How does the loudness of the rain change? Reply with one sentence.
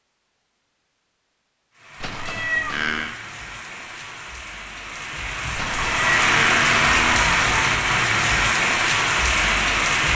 The volume of the rain goes up.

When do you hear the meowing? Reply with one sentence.
You can hear the meowing from 2.0 to 3.1 s and from 5.5 to 7.4 s.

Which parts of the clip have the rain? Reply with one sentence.
You can hear the rain from 1.8 to 10.0 s.